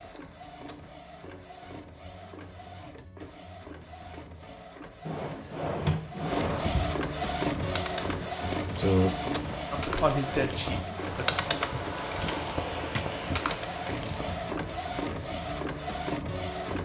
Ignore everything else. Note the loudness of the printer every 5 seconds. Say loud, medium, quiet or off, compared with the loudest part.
quiet, loud, medium, loud.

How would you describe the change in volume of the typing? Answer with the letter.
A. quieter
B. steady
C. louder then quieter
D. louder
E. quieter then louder
D.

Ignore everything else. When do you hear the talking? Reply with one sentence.
You can hear the talking from 9.7 to 11.2 s.